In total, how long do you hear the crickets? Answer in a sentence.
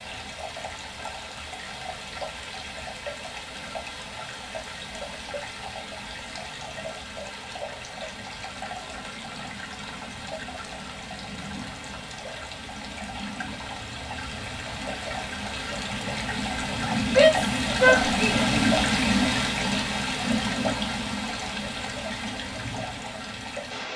You can't hear the crickets here.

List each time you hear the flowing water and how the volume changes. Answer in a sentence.
You can hear the flowing water from 0.0 to 23.9 s, getting louder.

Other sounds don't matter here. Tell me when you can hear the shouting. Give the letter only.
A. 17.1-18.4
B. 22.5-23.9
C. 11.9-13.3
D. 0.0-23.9
A.